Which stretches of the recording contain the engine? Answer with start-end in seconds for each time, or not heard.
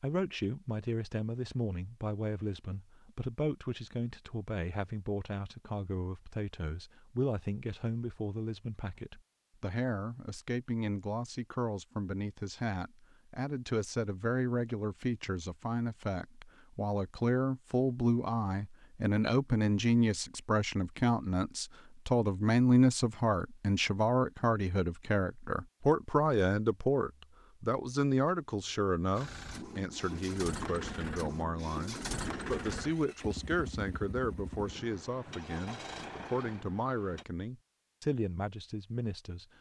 29.1-37.2.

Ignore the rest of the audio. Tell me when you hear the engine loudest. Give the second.
32 s.